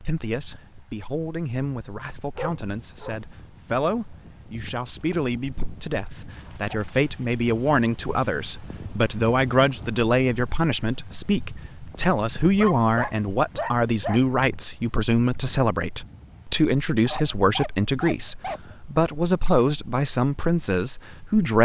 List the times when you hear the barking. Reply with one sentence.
You can hear the barking from 2.4 to 3.1 s, from 6.3 to 8.3 s, from 12.6 to 14.2 s and from 17.1 to 18.8 s.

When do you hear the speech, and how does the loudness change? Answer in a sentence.
You can hear the speech from 0.0 to 21.6 s, getting louder.